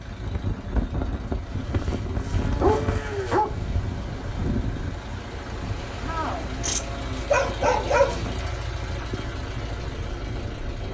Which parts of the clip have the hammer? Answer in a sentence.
You can't hear the hammer here.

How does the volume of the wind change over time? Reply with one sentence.
The volume of the wind goes down.